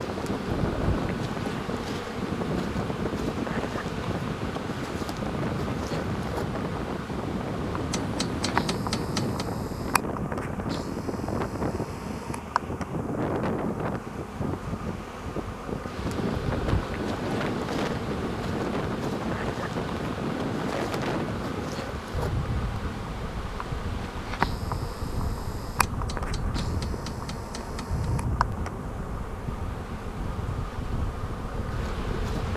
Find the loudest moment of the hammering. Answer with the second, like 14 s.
9 s.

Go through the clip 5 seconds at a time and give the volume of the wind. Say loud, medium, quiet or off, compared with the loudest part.
loud, loud, loud, loud, loud, medium, medium.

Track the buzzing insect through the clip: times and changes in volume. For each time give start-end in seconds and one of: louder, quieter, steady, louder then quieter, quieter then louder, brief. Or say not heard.
0.0-32.5 steady.